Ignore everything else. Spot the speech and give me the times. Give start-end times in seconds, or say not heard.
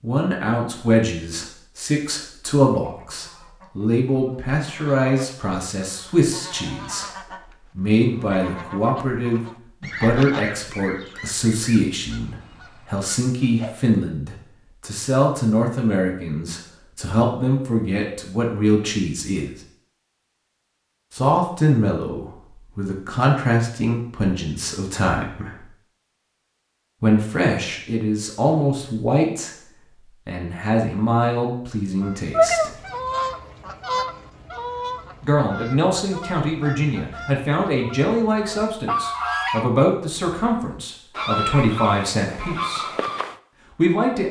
0.0-19.6, 21.1-25.6, 27.0-32.7, 35.2-42.9, 43.7-44.2.